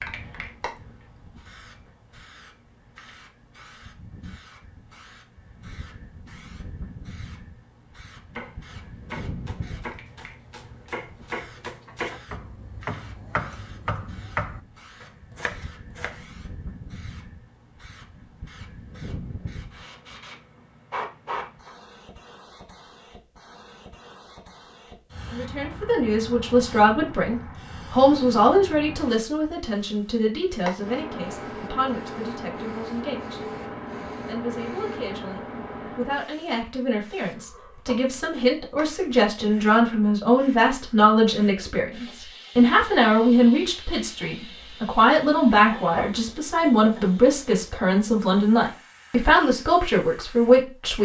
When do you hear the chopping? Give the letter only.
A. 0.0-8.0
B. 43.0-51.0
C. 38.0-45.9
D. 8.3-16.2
D.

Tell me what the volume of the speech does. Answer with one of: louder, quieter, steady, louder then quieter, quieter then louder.
quieter then louder.